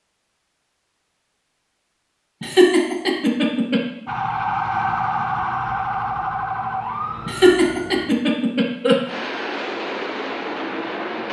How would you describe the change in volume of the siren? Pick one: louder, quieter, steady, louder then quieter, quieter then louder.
quieter.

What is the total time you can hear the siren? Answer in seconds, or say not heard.
4 s.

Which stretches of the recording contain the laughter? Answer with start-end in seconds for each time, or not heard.
2.4-3.9, 7.2-9.0.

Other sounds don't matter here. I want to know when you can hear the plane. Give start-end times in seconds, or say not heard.
9.1-11.2.